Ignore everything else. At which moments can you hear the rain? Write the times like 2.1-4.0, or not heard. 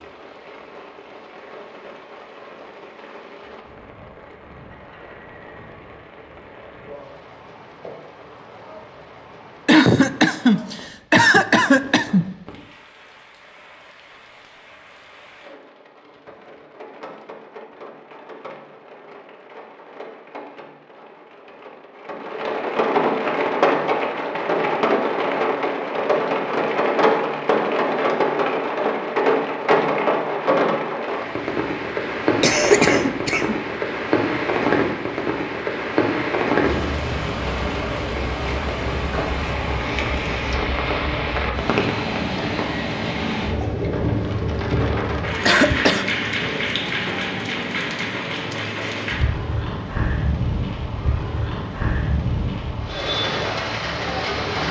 0.0-54.6.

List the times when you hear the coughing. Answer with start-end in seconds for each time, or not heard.
9.7-12.2, 32.4-33.5, 45.5-46.1.